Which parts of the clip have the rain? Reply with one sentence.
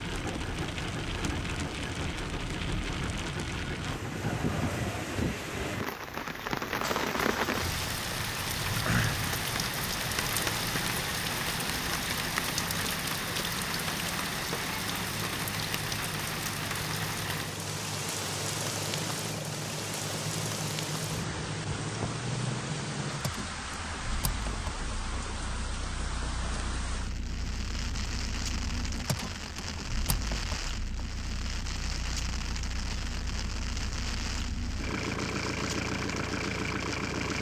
You can hear the rain from 0.0 to 37.3 s.